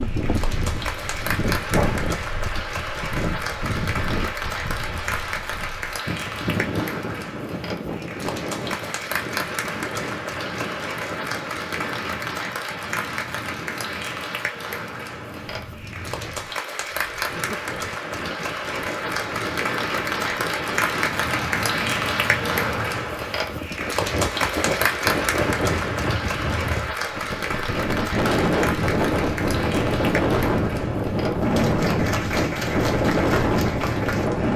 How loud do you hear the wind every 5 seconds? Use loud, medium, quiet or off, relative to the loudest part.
medium, medium, quiet, quiet, medium, loud, loud.